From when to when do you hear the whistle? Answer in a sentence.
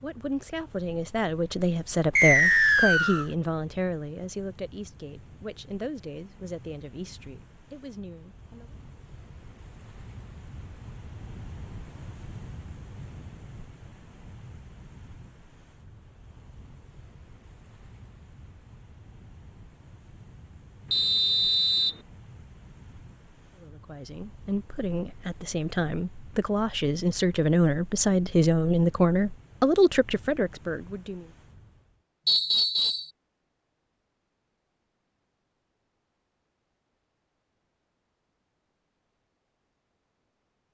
The whistle can be heard from 2.1 to 3.2 s, from 20.9 to 21.9 s and from 32.2 to 33.1 s.